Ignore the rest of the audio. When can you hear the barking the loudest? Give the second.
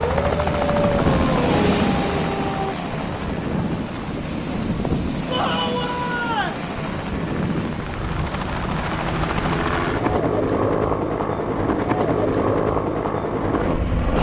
1 s.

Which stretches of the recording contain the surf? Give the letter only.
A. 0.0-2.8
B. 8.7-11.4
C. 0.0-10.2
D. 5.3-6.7
C.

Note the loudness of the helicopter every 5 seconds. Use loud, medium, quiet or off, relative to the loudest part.
medium, medium, loud.